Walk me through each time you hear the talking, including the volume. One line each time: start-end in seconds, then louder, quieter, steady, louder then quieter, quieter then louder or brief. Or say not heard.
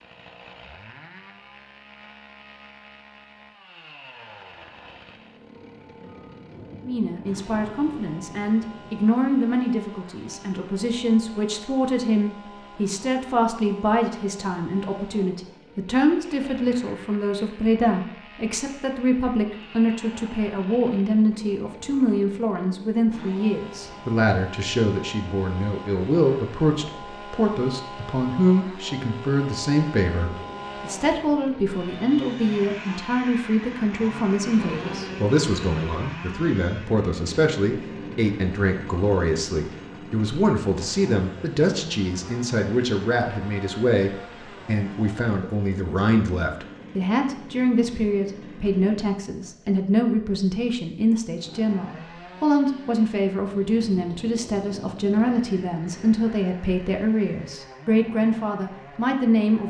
6.8-59.6 steady.